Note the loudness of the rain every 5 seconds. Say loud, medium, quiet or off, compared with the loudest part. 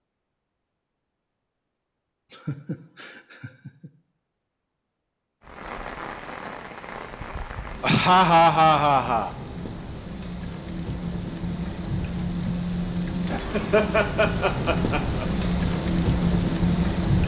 off, quiet, medium, loud.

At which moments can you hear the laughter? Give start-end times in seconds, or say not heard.
2.3-3.9, 7.8-9.3, 13.5-15.2.